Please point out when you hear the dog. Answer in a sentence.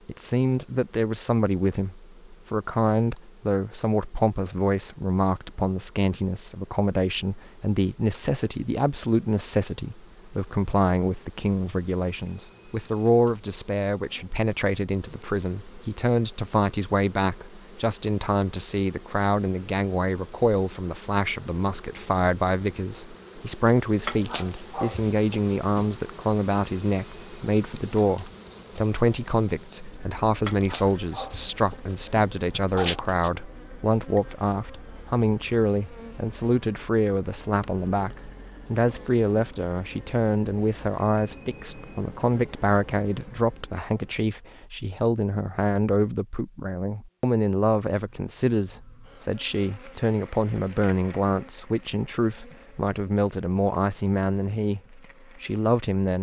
The dog can be heard from 24.1 to 26.0 s and from 30.4 to 33.3 s.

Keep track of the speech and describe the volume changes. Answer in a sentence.
The volume of the speech stays about the same.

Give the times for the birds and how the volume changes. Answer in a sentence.
You can't hear the birds here.